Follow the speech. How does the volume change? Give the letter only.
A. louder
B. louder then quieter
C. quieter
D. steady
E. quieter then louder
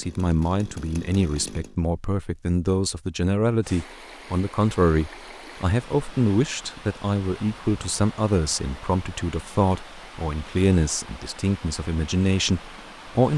D.